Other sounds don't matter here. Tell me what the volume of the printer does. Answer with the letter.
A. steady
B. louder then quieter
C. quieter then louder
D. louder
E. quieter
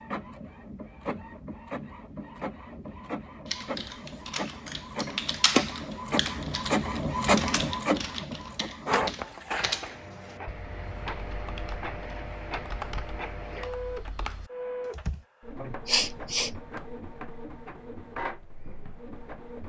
B.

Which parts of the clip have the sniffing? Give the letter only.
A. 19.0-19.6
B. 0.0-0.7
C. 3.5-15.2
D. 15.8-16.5
D.